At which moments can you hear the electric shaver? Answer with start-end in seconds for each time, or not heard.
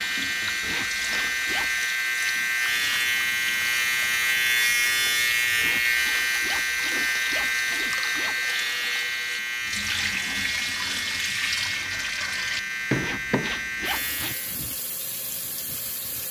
0.0-14.6.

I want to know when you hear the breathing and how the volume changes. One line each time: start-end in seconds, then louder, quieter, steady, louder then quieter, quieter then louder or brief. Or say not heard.
not heard.